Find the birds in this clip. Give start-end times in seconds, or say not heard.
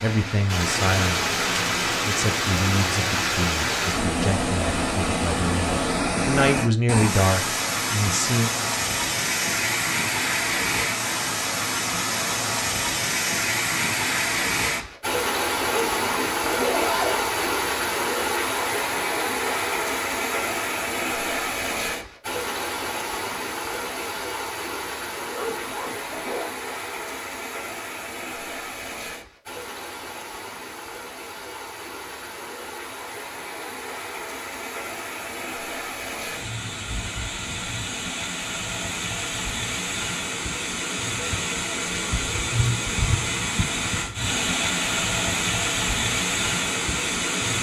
not heard.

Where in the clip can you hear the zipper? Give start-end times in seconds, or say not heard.
15.7-17.4, 25.3-26.6.